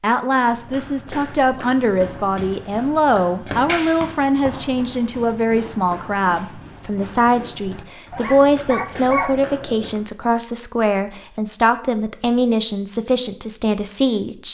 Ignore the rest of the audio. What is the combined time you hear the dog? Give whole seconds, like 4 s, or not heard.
2 s.